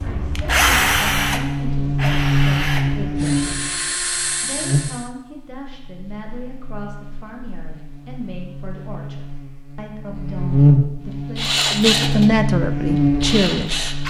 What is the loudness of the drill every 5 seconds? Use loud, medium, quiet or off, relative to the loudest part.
loud, off, loud.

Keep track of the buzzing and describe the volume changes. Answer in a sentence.
The loudness of the buzzing goes down, then up.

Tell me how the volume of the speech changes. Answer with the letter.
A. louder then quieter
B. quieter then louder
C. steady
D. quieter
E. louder
E.